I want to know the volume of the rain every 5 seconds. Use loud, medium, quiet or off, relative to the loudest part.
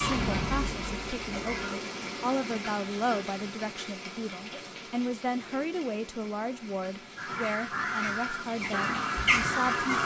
loud, medium.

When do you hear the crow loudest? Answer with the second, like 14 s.
9 s.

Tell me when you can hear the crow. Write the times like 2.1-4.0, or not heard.
0.0-1.8, 7.2-10.0.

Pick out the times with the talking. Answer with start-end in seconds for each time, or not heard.
0.0-10.0.